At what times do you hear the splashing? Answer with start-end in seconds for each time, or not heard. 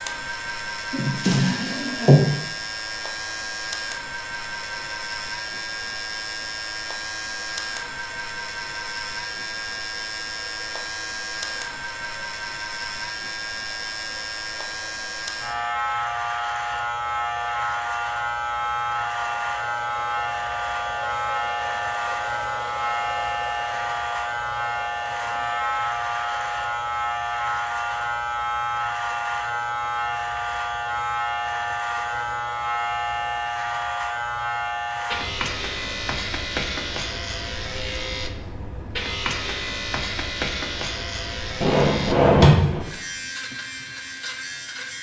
not heard.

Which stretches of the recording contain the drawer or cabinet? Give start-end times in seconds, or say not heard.
0.9-2.2, 41.6-42.9.